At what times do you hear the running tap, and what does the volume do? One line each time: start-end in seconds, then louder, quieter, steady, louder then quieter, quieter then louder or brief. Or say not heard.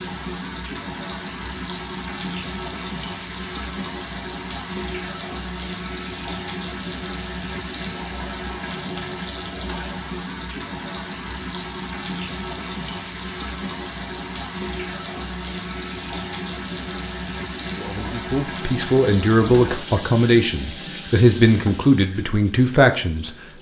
0.0-23.5 steady.